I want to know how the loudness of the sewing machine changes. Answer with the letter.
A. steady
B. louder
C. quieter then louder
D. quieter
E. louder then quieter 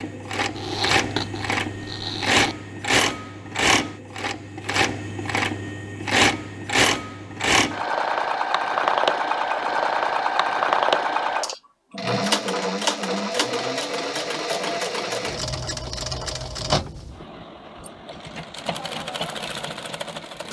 D.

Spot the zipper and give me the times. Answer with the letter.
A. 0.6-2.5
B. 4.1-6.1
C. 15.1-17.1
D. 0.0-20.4
A.